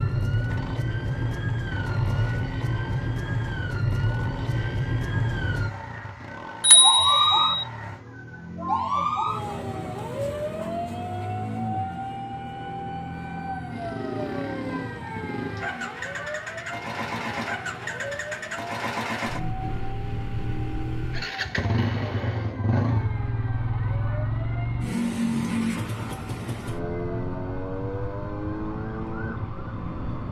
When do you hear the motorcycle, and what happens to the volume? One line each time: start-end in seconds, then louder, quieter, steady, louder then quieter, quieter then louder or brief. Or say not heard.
0.1-30.2 louder.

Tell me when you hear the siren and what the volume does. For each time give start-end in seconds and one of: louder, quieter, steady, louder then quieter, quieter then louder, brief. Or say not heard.
0.0-30.2 quieter.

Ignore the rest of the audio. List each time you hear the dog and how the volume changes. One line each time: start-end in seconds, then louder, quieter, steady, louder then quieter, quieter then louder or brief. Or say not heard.
not heard.